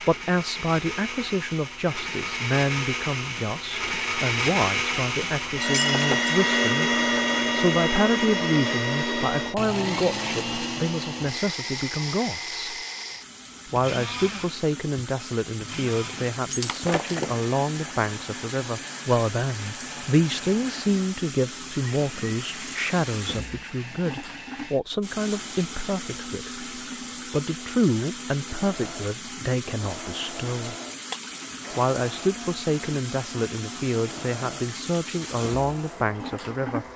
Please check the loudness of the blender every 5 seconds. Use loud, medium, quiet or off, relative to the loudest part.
medium, loud, medium, quiet, quiet, quiet, quiet, quiet.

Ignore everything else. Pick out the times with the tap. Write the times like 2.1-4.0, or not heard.
13.2-36.9.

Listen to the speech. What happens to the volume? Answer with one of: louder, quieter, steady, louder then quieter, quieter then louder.
steady.